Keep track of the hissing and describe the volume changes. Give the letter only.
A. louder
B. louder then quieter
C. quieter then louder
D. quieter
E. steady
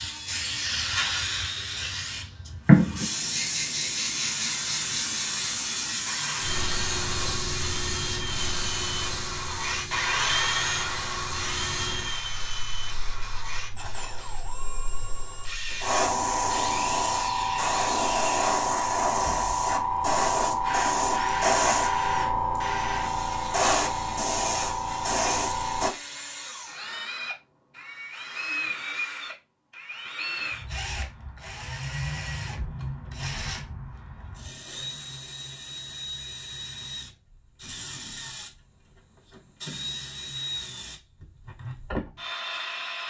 C.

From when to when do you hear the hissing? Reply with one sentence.
You can hear the hissing from 0.0 to 25.9 s.